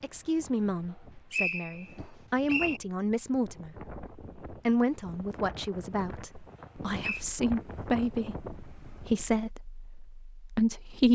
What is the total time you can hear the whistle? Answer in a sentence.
You can hear the whistle for 2 seconds altogether.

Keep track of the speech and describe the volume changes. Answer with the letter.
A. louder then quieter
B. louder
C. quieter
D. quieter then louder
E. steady
E.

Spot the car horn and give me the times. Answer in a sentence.
You can't hear the car horn here.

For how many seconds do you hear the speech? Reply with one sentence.
You can hear the speech for 11 seconds altogether.